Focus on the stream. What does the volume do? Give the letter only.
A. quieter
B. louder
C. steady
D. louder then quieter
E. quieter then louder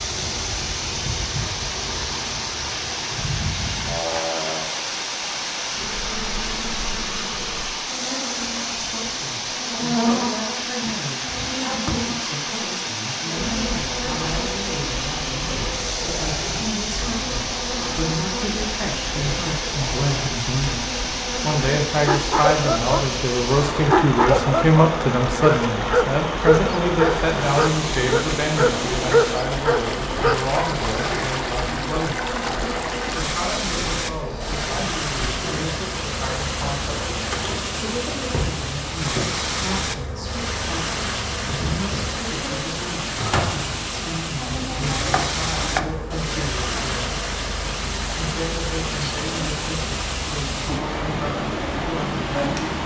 C.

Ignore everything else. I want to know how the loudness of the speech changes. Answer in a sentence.
The volume of the speech goes up, then down.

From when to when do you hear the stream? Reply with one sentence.
The stream can be heard from 0.0 to 52.8 s.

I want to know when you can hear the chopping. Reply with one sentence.
You can hear the chopping from 44.4 to 45.9 s.